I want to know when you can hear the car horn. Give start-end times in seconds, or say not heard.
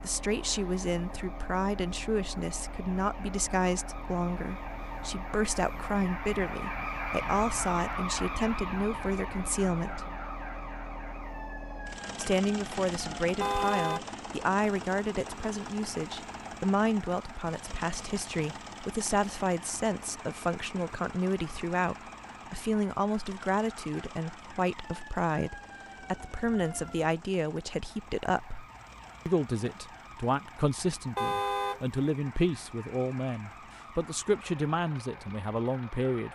13.4-14.1, 31.1-31.9.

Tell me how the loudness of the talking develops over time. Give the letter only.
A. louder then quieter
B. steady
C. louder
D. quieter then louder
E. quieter
B.